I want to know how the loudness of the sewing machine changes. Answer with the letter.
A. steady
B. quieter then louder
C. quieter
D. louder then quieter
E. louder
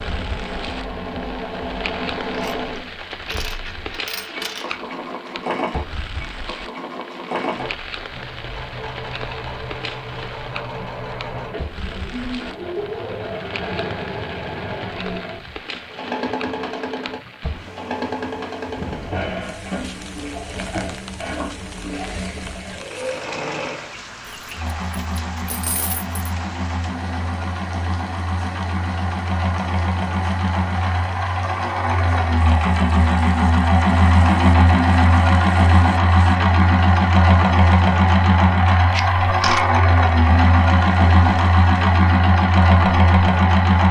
E.